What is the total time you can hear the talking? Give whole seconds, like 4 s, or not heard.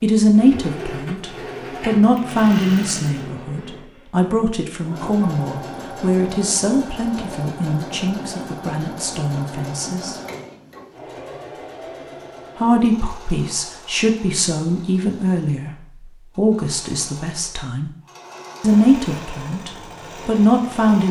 18 s.